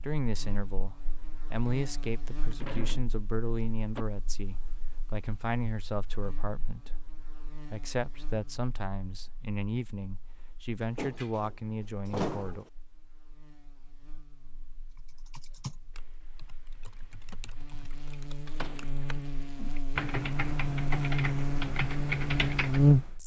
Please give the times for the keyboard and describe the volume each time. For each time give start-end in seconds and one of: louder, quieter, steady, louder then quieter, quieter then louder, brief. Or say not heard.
14.9-23.1 quieter then louder.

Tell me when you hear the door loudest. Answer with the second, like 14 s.
12 s.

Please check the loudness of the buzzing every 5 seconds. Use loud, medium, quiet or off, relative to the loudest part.
quiet, quiet, quiet, quiet, loud.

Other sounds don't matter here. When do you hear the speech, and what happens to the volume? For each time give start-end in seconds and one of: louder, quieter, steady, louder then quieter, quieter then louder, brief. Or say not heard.
0.0-12.7 steady.